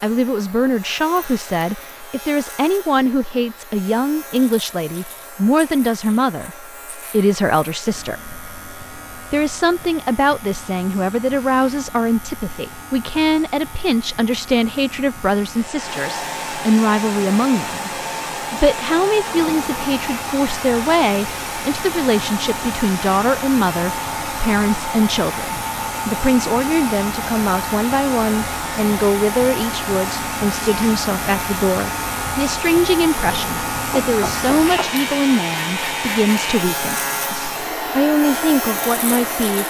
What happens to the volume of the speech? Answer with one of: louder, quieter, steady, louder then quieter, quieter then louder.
steady.